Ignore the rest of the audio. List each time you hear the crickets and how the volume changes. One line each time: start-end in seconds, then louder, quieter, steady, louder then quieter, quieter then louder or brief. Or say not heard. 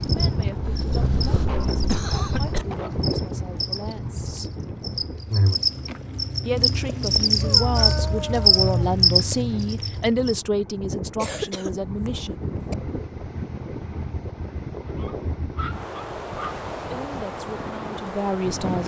0.0-10.4 louder.